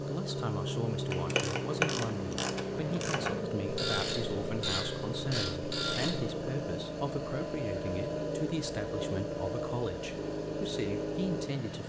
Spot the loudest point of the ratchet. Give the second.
2 s.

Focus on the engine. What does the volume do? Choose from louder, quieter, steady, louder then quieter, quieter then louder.
steady.